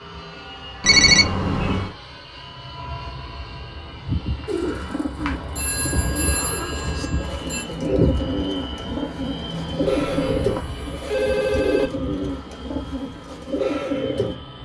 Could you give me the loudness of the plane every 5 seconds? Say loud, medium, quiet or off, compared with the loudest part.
medium, loud, medium.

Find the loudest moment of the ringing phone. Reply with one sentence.
The loudest moment of the ringing phone is at 1 second.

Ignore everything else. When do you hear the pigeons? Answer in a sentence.
You can hear the pigeons from 4.5 to 14.3 s.